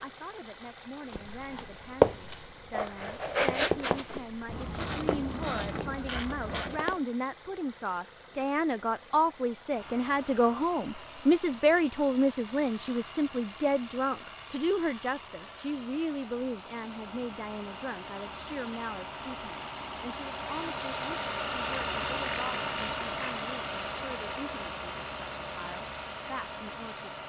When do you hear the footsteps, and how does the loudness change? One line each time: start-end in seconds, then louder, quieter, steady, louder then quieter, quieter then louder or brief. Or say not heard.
1.1-7.0 quieter.